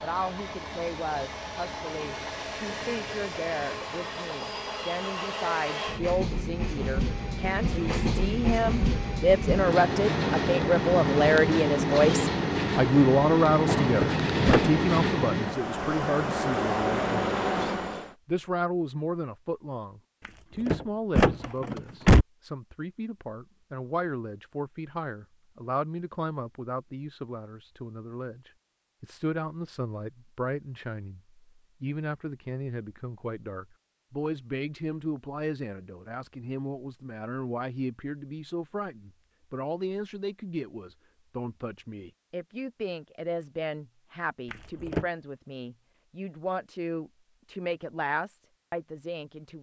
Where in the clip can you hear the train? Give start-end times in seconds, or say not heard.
0.0-18.1.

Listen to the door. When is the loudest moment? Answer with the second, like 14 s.
22 s.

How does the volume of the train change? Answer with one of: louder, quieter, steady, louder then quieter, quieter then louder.
louder.